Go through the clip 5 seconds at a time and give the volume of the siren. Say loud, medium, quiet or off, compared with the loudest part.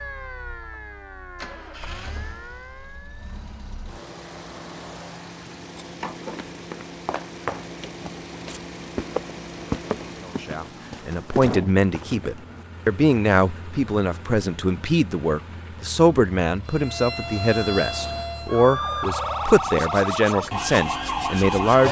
quiet, off, off, loud, loud.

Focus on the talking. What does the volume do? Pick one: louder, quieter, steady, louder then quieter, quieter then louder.
steady.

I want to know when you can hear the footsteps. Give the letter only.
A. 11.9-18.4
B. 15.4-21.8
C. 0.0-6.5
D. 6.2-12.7
D.